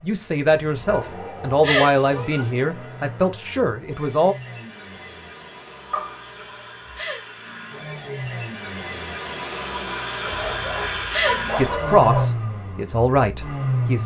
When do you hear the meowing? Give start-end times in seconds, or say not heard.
1.6-2.5, 7.0-7.8, 11.1-12.0.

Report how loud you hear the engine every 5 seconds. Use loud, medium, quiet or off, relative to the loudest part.
quiet, medium, loud.